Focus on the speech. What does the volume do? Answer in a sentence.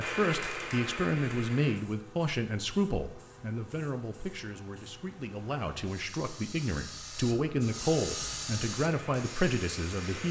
The loudness of the speech goes down, then up.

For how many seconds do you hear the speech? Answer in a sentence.
The speech can be heard for 10 seconds in total.